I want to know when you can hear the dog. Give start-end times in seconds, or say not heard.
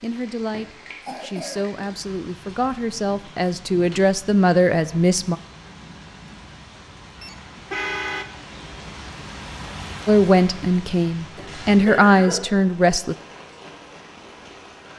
not heard.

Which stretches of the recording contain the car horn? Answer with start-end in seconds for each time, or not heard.
7.2-8.3.